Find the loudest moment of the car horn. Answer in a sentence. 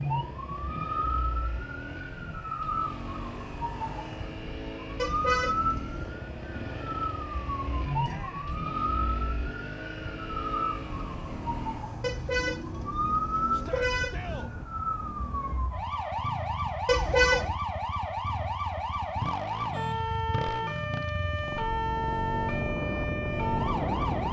The volume of the car horn peaks at 17 seconds.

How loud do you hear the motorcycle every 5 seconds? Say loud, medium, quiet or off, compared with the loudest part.
medium, medium, medium, medium, loud.